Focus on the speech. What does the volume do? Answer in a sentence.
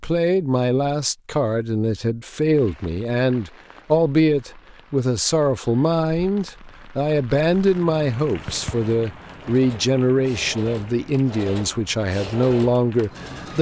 The loudness of the speech stays about the same.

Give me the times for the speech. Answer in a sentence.
You can hear the speech from 0.0 to 13.5 s.